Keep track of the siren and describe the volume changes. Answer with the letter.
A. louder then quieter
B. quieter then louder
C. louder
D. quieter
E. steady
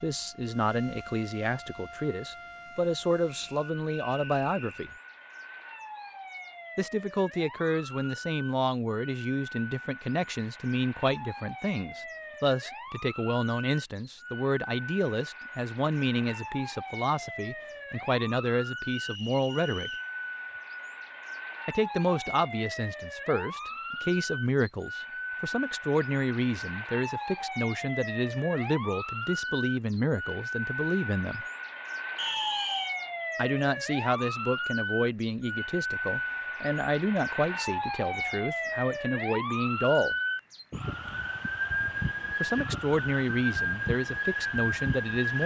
C.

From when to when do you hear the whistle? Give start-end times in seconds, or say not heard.
3.2-4.9, 18.9-20.1, 32.1-33.0.